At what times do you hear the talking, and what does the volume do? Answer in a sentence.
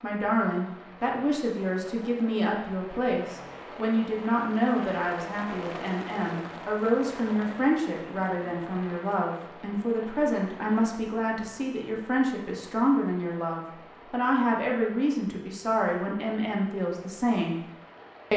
The talking can be heard from 0.0 to 17.6 s, at a steady volume.